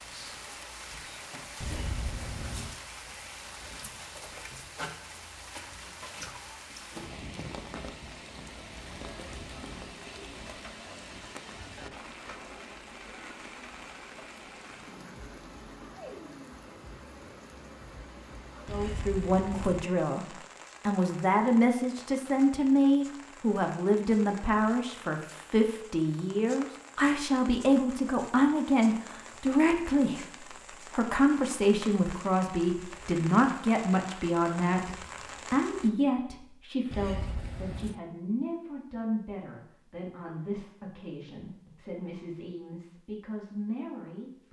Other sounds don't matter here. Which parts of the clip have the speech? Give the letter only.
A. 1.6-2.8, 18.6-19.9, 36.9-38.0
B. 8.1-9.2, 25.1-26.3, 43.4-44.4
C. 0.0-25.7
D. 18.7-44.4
D.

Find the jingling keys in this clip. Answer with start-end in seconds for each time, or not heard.
1.6-2.8, 18.6-19.9, 36.9-38.0.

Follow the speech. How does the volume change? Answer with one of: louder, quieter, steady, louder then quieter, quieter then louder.
quieter.